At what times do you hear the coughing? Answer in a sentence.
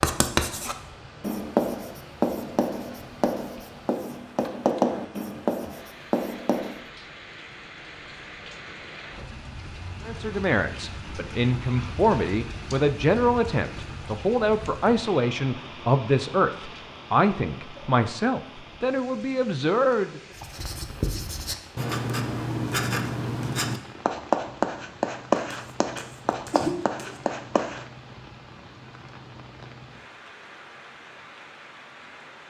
The coughing can be heard from 25.5 to 27.2 s.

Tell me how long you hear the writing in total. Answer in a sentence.
The writing can be heard for 14 seconds in total.